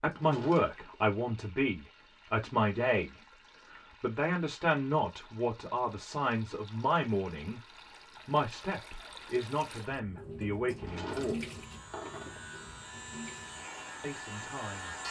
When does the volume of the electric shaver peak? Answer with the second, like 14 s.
15 s.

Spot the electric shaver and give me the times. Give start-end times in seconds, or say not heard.
11.3-15.0.